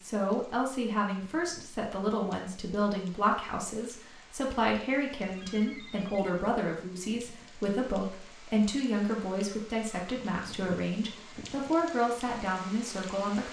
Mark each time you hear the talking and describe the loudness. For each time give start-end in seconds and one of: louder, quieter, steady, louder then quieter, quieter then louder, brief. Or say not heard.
0.0-13.4 steady.